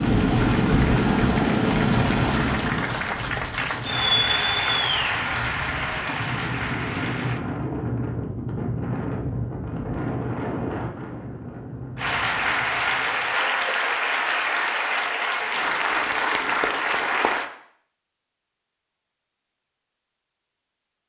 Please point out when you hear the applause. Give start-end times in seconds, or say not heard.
0.0-7.5, 11.9-17.5.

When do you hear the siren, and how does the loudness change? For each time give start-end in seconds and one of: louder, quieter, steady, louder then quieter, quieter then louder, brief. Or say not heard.
not heard.